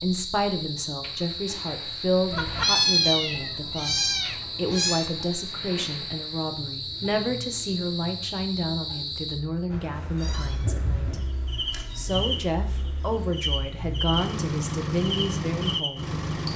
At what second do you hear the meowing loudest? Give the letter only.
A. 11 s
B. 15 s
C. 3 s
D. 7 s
C.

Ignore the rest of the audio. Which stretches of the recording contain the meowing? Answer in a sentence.
The meowing can be heard from 2.3 to 5.1 s and from 10.2 to 12.4 s.